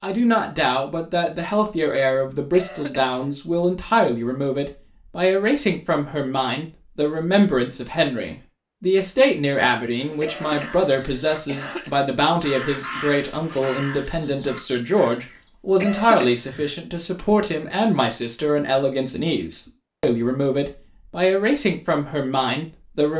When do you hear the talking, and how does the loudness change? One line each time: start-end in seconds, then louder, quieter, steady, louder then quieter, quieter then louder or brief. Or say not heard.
0.0-23.1 steady.